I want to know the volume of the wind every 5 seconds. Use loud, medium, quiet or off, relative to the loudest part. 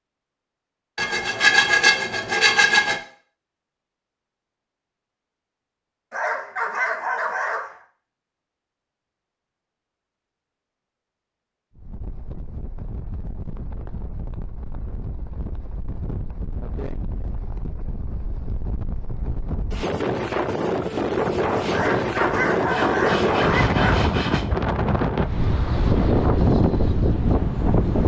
off, off, quiet, quiet, loud, loud.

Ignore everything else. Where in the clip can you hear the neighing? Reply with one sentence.
You can't hear the neighing here.